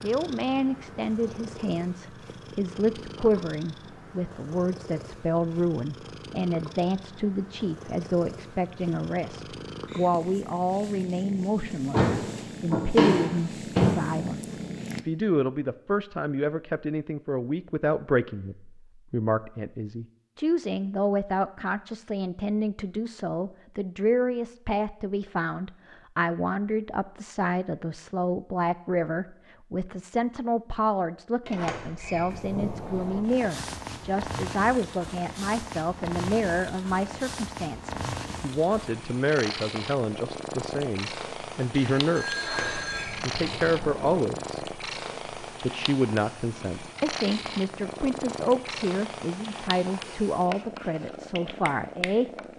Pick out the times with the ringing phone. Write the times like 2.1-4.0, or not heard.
41.8-43.2.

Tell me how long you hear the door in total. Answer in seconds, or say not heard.
6 s.